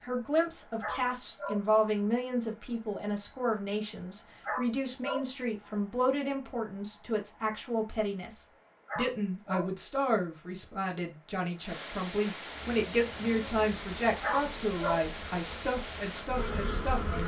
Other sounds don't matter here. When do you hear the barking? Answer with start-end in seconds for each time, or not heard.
0.8-1.6, 4.5-5.2, 8.8-9.7, 14.2-15.0.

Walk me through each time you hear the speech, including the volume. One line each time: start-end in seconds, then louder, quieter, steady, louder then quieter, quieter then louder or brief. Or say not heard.
0.0-17.2 steady.